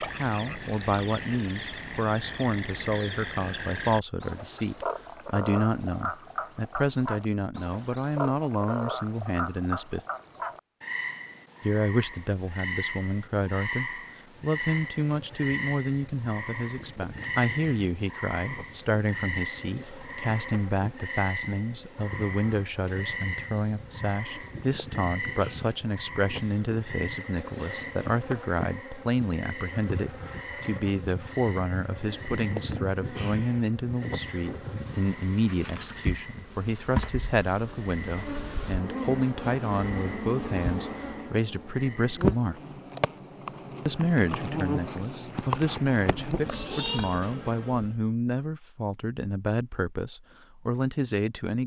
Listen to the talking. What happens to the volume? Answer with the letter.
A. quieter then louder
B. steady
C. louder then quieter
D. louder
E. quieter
B.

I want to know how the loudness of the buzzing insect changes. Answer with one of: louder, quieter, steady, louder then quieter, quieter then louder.
louder.